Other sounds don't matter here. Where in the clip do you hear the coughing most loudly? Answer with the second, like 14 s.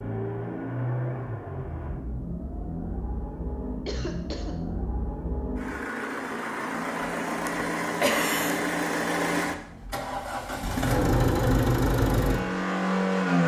8 s.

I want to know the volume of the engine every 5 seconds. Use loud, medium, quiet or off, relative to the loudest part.
medium, medium, loud.